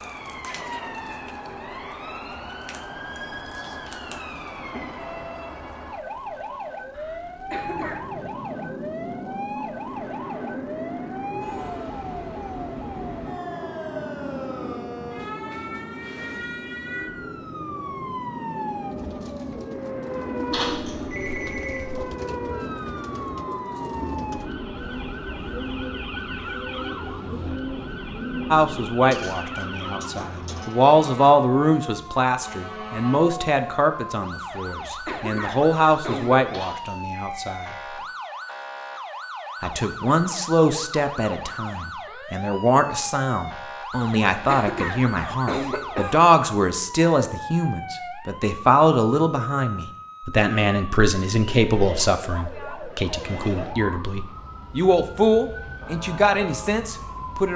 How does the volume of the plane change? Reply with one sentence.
The volume of the plane goes up.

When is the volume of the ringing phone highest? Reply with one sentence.
The loudest moment of the ringing phone is at 21 seconds.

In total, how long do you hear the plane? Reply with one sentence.
The plane can be heard for 29 seconds in total.